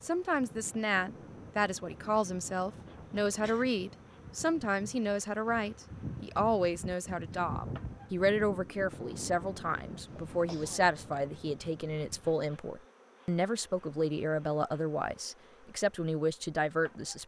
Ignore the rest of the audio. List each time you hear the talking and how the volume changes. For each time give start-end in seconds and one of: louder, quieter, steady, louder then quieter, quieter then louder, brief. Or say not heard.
0.0-17.2 steady.